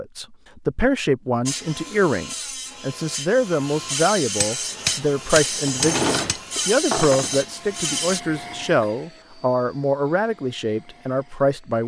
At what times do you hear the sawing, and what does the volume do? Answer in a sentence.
The sawing can be heard from 1.4 to 8.2 s, getting louder.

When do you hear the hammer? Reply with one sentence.
The hammer can be heard from 4.3 to 6.5 s.